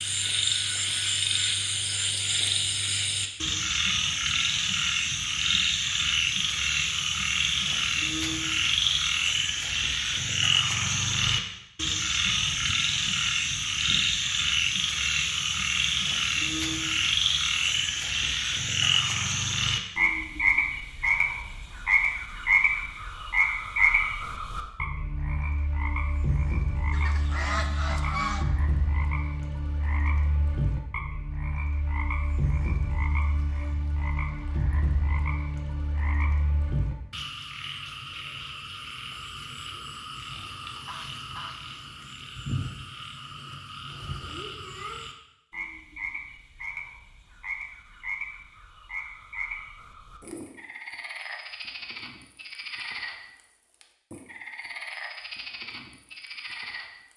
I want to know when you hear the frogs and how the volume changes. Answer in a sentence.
You can hear the frogs from 0.0 to 57.1 s, getting quieter.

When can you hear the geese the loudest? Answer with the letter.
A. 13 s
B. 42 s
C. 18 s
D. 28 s
D.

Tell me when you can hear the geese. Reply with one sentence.
The geese can be heard from 12.4 to 14.2 s, from 26.9 to 28.4 s and from 40.6 to 41.9 s.